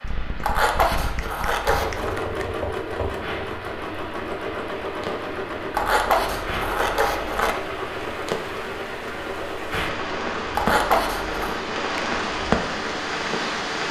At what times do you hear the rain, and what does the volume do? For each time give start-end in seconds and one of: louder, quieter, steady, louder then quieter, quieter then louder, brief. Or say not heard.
0.0-13.8 louder.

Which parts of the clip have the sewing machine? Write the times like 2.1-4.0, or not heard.
1.5-13.8.